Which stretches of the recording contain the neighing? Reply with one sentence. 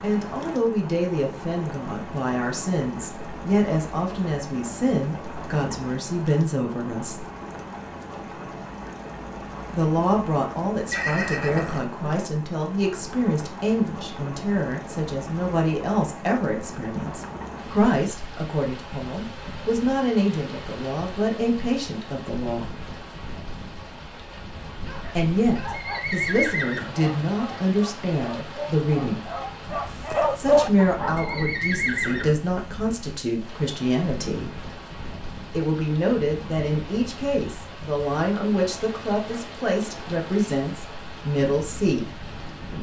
The neighing can be heard from 10.9 to 12.0 s, from 25.7 to 26.9 s and from 31.1 to 32.3 s.